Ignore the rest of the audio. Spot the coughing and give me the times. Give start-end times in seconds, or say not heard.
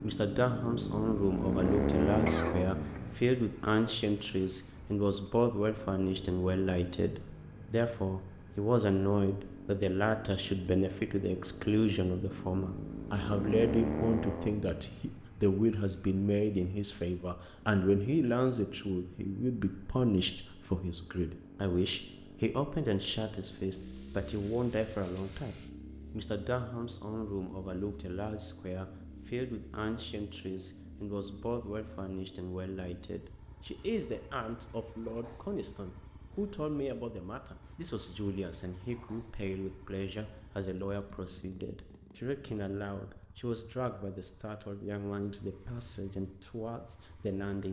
2.2-3.1.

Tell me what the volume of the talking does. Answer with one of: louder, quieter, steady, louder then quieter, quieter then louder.
quieter.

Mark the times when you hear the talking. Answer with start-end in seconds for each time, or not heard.
0.0-47.6.